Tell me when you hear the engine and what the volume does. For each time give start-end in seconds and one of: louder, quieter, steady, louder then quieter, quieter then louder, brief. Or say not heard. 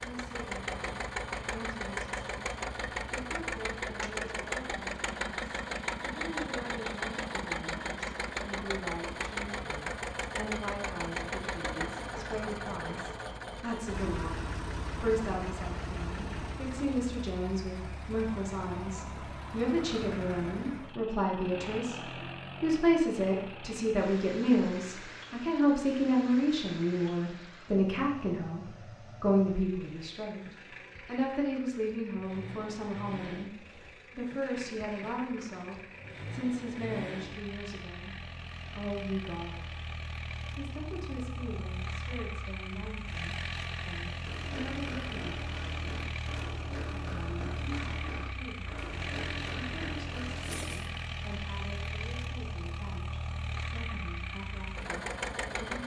0.0-55.8 quieter then louder.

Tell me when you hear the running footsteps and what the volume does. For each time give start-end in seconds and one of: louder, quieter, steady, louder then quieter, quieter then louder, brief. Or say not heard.
44.2-50.6 steady.